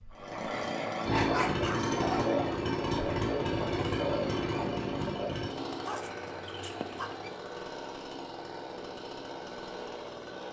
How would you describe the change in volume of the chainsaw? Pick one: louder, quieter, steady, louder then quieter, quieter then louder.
quieter.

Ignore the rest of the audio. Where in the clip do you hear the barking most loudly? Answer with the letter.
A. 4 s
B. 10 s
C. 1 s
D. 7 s
C.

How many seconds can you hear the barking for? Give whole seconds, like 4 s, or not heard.
3 s.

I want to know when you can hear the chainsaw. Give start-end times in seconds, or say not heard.
0.0-10.4.